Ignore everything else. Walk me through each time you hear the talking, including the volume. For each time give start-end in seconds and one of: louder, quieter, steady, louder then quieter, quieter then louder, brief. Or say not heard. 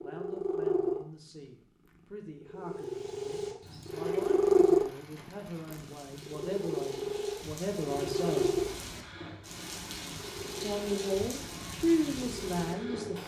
0.0-8.6 louder
10.6-13.2 brief.